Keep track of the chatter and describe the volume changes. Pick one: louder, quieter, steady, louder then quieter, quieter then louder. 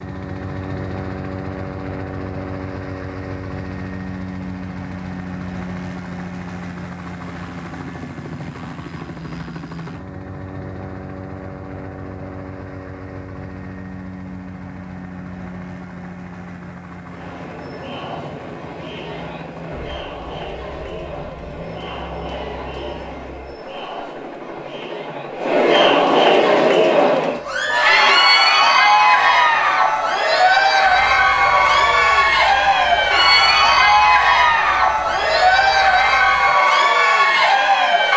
louder.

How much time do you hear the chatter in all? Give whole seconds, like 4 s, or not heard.
21 s.